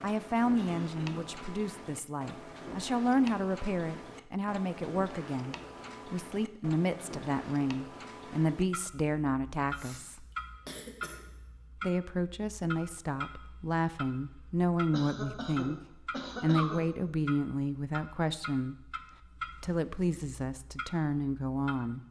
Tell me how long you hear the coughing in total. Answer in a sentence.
The coughing can be heard for 4 seconds in total.